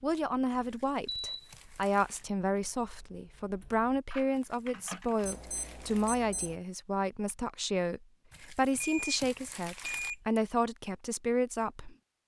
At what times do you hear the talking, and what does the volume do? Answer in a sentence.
The talking can be heard from 0.0 to 12.2 s, at a steady volume.